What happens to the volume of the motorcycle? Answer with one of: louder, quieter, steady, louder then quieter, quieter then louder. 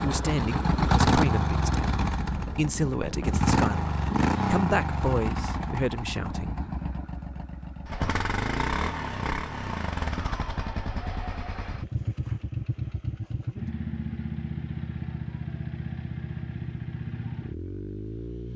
quieter.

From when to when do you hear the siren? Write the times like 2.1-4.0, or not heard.
not heard.